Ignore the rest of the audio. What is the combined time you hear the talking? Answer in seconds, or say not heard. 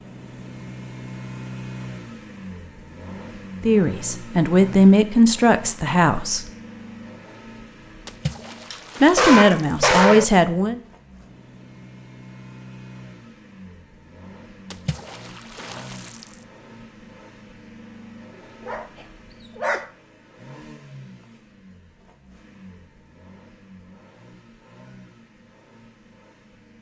5 s.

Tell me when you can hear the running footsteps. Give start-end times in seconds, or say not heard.
not heard.